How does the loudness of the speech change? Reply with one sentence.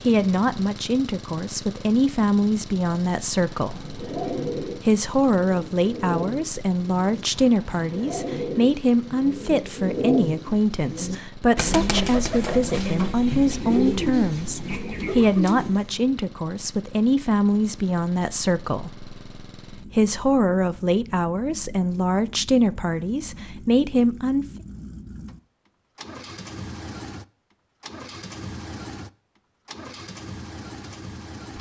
The loudness of the speech stays about the same.